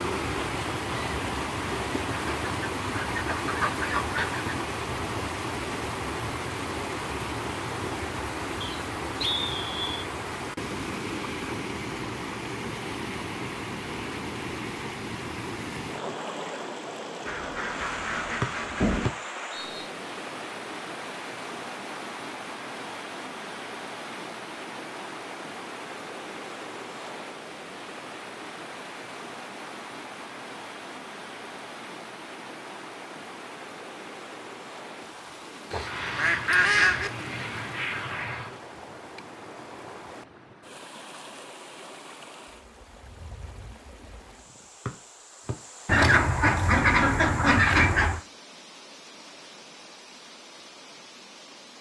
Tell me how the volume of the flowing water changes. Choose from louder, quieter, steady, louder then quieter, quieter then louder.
quieter.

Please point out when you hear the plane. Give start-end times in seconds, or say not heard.
35.7-38.6.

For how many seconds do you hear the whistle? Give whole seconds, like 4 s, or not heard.
3 s.